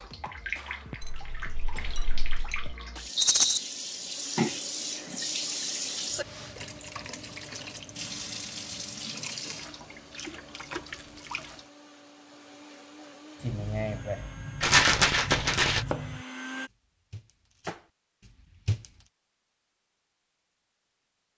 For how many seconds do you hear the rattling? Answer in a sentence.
The rattling can be heard for 2 seconds in total.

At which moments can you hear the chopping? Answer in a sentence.
You can hear the chopping from 13.4 to 18.9 s.